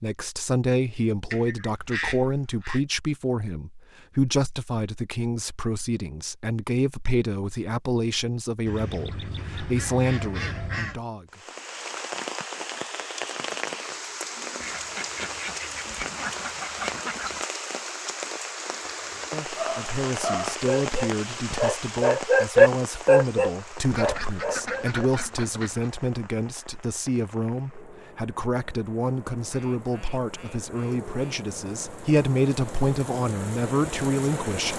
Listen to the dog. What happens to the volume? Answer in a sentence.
The loudness of the dog goes up, then down.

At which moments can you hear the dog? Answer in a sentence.
You can hear the dog from 19.6 to 25.1 s.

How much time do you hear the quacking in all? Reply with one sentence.
The quacking can be heard for 11 seconds in total.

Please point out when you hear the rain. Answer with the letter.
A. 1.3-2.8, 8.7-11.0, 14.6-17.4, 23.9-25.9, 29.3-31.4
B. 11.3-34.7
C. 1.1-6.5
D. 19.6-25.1
B.